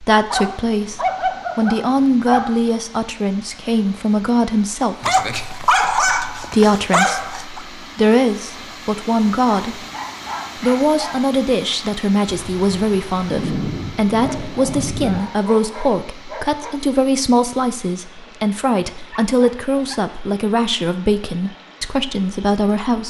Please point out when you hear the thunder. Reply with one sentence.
The thunder can be heard from 12.2 to 15.2 s.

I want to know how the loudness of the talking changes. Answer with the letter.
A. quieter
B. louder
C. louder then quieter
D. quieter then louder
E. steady
E.